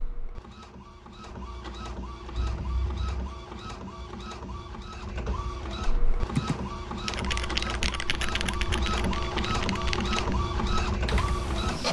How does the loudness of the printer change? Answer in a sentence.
The volume of the printer goes up.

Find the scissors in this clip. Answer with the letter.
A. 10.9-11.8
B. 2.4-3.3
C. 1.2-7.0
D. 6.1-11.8
B.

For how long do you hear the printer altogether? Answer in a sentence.
The printer can be heard for 12 seconds in total.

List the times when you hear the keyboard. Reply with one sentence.
The keyboard can be heard from 6.1 to 11.8 s.